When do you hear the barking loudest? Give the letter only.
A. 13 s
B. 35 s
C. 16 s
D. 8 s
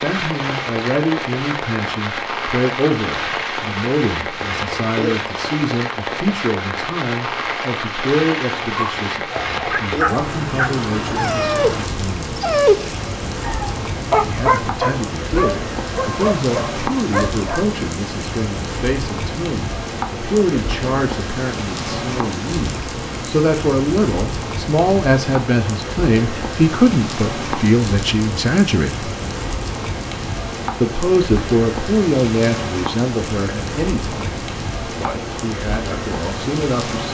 A.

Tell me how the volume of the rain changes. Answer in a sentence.
The loudness of the rain stays about the same.